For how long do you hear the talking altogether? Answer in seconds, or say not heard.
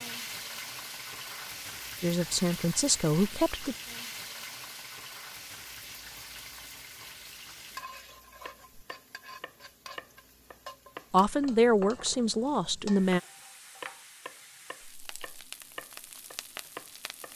4 s.